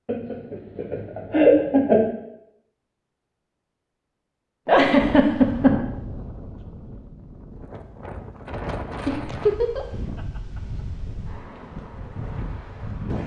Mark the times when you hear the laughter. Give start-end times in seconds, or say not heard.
0.1-2.0, 4.7-5.8, 9.1-9.8.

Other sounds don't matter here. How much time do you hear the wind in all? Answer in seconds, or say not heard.
8 s.